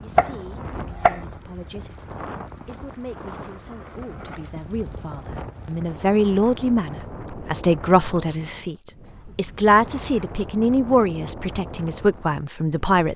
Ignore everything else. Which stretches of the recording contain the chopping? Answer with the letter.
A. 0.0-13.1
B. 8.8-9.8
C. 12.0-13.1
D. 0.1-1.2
D.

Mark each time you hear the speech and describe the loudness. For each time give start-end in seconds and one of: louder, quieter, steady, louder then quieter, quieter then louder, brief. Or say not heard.
0.0-13.1 louder.